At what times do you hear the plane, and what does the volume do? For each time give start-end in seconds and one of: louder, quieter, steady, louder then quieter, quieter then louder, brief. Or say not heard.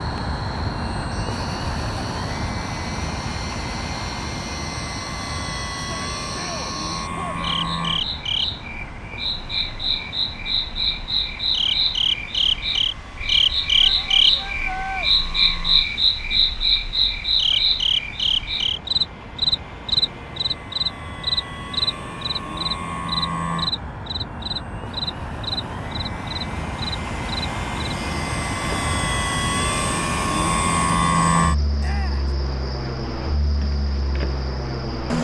0.0-35.1 quieter then louder.